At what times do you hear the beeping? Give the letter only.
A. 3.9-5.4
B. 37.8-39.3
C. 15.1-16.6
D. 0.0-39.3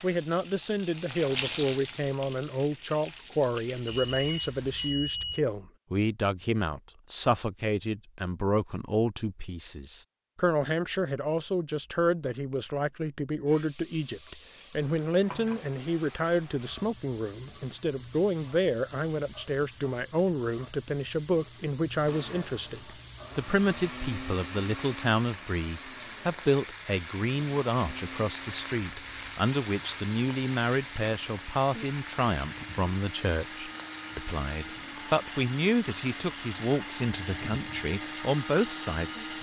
A.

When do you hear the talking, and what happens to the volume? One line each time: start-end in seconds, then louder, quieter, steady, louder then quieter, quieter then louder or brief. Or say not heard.
0.0-39.3 steady.